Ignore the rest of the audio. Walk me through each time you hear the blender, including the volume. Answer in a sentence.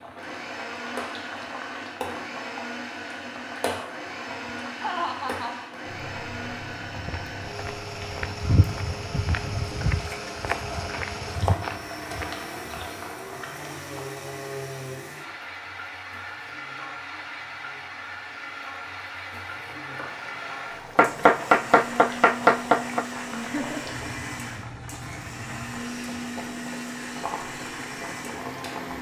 The blender can be heard from 0.0 to 28.9 s, at a steady volume.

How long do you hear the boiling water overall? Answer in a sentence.
You can hear the boiling water for 29 seconds altogether.